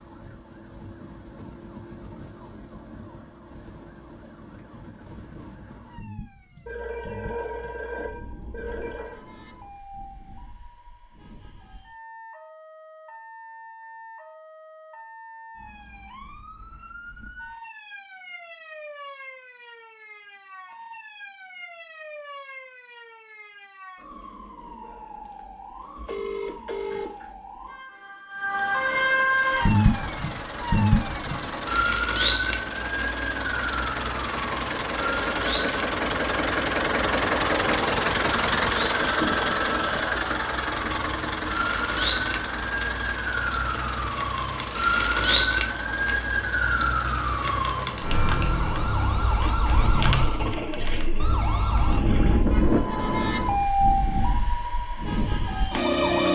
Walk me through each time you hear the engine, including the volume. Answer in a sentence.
You can hear the engine from 29.1 to 52.5 s, getting louder then quieter.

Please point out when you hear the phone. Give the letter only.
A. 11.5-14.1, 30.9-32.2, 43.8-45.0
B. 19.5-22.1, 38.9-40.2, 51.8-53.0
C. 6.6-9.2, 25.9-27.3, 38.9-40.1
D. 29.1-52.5
C.